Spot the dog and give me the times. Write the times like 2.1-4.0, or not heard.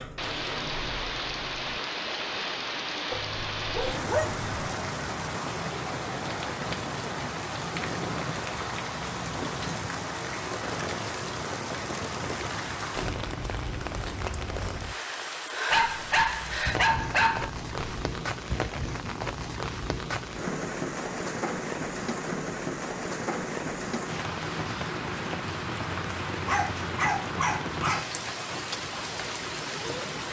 3.1-4.6, 15.7-18.1, 26.4-28.1.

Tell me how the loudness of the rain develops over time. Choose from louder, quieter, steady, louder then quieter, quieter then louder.
steady.